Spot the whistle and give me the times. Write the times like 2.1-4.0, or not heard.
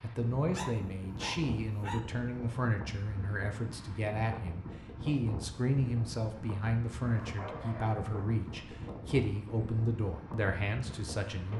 not heard.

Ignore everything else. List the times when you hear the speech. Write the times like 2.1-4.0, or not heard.
0.0-11.5.